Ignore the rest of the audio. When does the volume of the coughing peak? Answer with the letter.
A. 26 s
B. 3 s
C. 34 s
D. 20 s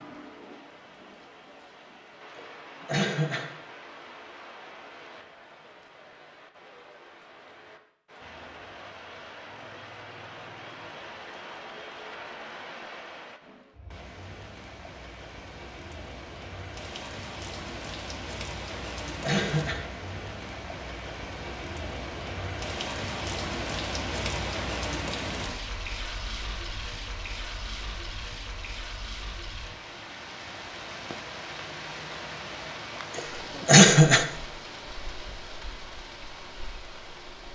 C.